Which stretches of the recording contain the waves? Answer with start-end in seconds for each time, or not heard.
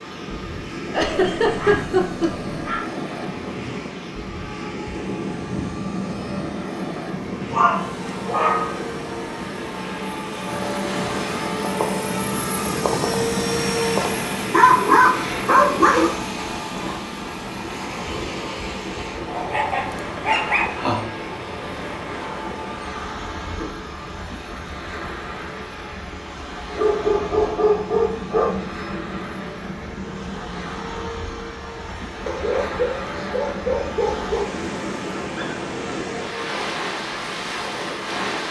0.0-38.4.